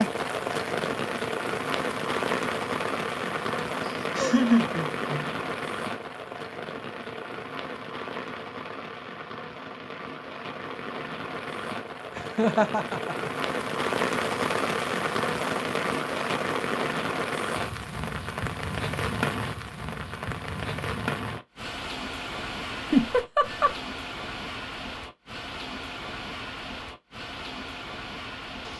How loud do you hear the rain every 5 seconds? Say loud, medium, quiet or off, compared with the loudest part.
loud, medium, loud, loud, medium, medium.